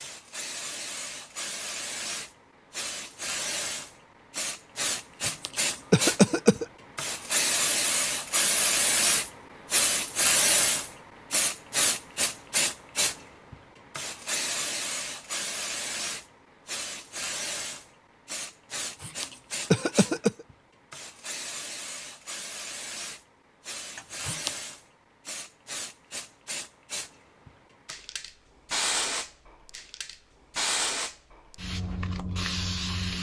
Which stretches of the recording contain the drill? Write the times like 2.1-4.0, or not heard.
not heard.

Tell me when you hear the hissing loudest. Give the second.
10 s.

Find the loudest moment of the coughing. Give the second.
6 s.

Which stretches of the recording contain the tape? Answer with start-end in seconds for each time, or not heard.
not heard.